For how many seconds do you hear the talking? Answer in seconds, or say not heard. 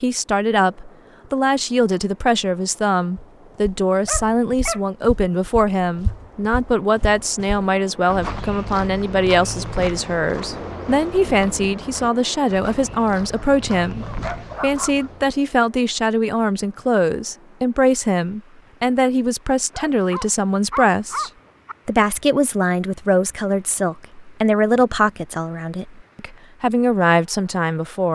28 s.